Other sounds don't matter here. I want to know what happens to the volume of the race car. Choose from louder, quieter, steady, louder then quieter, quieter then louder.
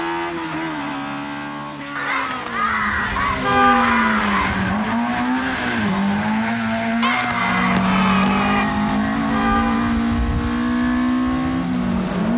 louder.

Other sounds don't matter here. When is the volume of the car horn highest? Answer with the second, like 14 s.
4 s.